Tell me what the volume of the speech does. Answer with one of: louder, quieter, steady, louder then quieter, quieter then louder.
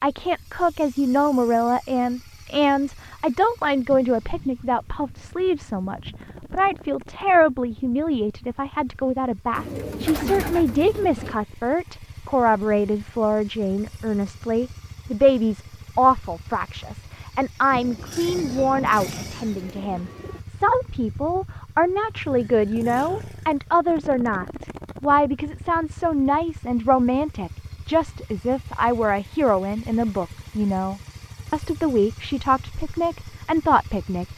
steady.